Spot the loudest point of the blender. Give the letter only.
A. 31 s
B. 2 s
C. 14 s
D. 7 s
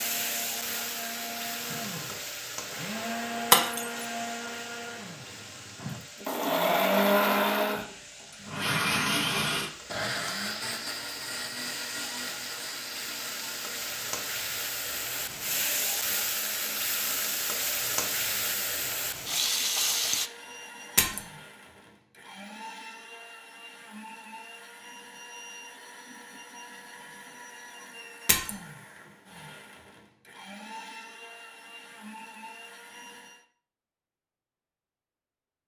D.